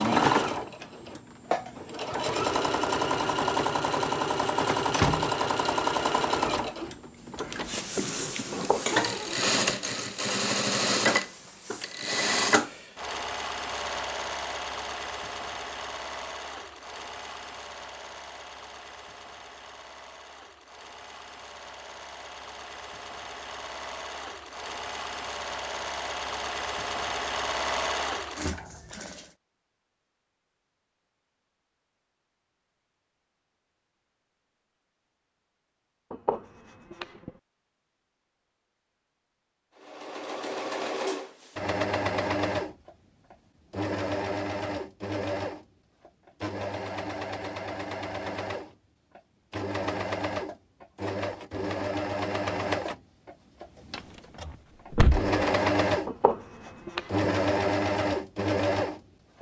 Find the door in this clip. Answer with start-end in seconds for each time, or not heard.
4.9-5.7, 54.0-55.3.